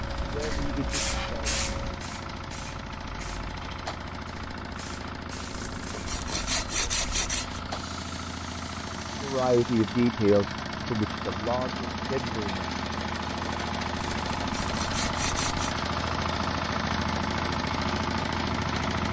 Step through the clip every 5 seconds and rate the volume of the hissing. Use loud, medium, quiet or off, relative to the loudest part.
loud, medium, off, off.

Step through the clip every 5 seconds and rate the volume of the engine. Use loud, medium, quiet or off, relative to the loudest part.
medium, medium, loud, loud.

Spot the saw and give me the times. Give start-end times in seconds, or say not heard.
5.5-7.6, 14.2-15.8.